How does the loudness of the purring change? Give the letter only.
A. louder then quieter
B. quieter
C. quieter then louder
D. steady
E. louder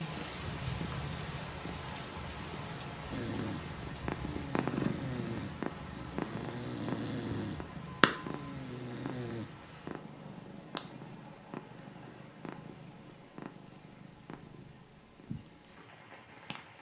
A.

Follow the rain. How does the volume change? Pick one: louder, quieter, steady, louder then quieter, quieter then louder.
quieter.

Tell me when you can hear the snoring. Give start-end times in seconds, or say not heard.
3.1-9.4.